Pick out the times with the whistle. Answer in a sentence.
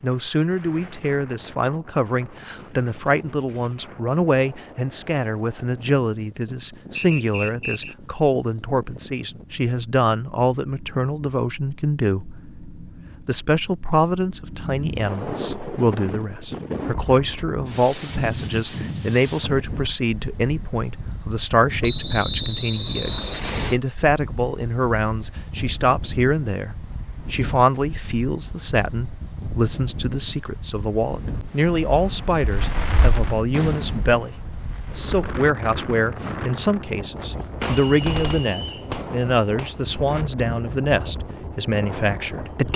The whistle can be heard from 7.0 to 8.0 s, from 21.8 to 23.8 s and from 37.9 to 38.9 s.